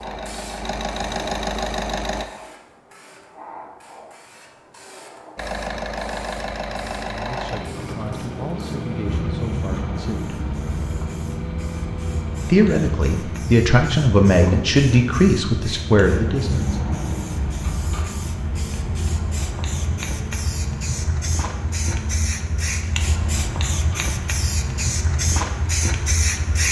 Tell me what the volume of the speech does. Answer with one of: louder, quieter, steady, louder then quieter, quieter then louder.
louder.